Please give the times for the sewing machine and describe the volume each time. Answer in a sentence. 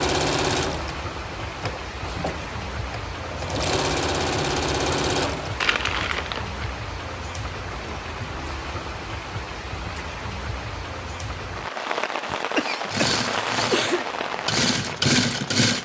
You can hear the sewing machine from 0.0 to 5.7 s, getting quieter then louder; and briefly from 12.8 to 15.8 s.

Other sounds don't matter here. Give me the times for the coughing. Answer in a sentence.
You can hear the coughing from 12.2 to 14.1 s.